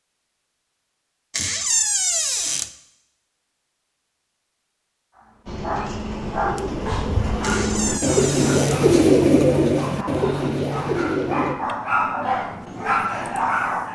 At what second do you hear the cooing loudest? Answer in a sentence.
The loudest moment of the cooing is at 9 seconds.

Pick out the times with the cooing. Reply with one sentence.
The cooing can be heard from 5.5 to 11.6 s.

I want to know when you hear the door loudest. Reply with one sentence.
The volume of the door peaks at 2 seconds.